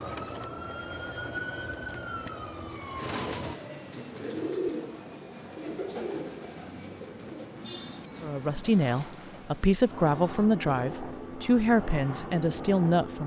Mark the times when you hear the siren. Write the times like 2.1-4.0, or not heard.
0.0-3.6.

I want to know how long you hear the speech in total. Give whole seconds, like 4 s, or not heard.
5 s.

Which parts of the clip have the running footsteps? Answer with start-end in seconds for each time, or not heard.
not heard.